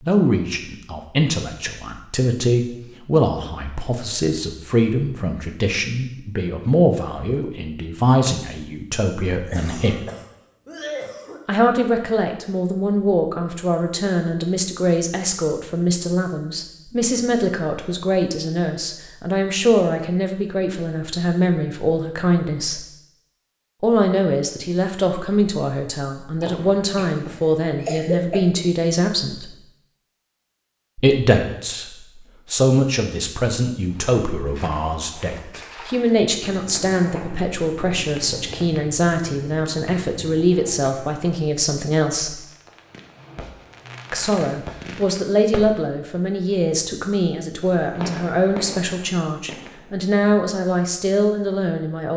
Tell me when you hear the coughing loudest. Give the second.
28 s.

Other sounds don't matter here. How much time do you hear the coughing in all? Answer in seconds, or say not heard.
4 s.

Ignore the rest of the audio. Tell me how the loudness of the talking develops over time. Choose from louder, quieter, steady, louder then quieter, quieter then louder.
steady.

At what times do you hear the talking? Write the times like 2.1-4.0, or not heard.
0.0-10.1, 11.4-22.8, 23.8-29.6, 30.9-42.4, 44.1-52.1.